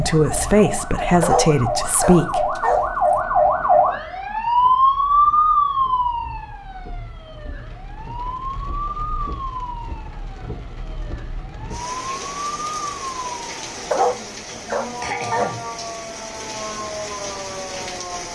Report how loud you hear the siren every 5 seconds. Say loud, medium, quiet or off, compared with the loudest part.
loud, loud, quiet, quiet.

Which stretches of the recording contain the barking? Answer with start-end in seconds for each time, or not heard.
1.2-3.1, 13.9-15.6.